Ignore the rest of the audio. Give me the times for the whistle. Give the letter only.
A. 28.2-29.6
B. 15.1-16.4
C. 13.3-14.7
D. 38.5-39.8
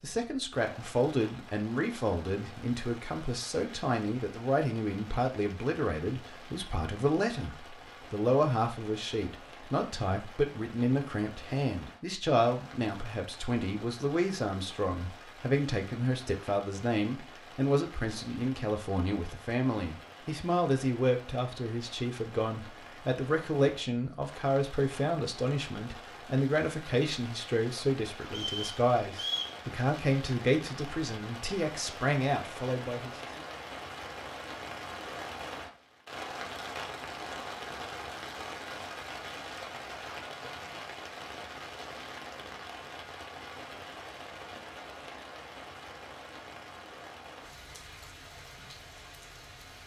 A.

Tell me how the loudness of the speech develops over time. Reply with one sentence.
The loudness of the speech stays about the same.